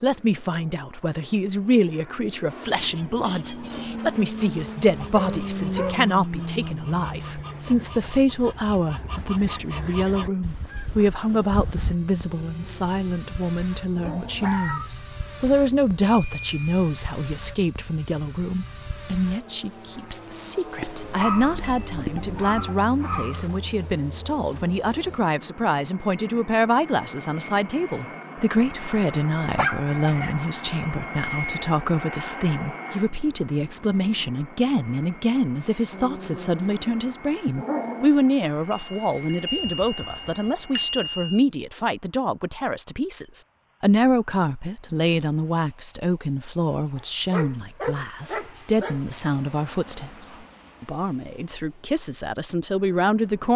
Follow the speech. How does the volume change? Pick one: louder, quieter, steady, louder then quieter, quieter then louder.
steady.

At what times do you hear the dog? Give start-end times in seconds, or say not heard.
5.0-6.0, 12.2-14.9, 20.8-23.6, 29.6-30.4, 35.9-38.1, 47.0-49.0.